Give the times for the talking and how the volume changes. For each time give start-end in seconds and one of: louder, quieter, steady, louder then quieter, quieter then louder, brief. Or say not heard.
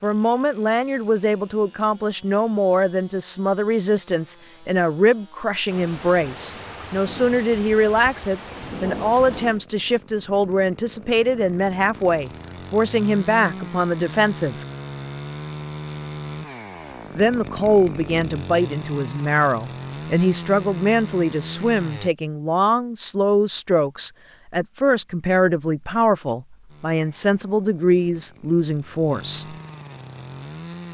0.0-14.7 steady
17.1-29.6 steady.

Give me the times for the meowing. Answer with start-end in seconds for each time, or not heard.
not heard.